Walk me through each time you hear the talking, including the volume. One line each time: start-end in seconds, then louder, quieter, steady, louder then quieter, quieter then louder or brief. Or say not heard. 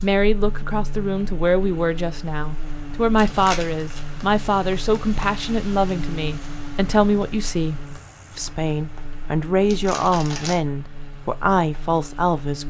0.0-12.6 steady.